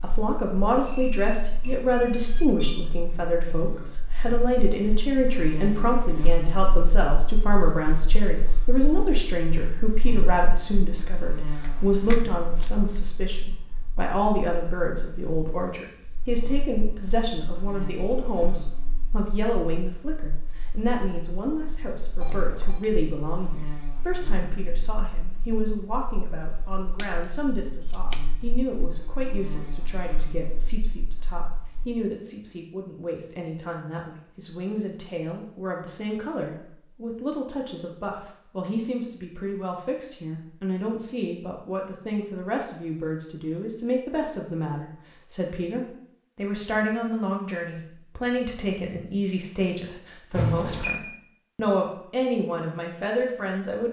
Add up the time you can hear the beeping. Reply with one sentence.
You can hear the beeping for 3 seconds altogether.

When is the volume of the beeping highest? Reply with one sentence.
The volume of the beeping peaks at 51 seconds.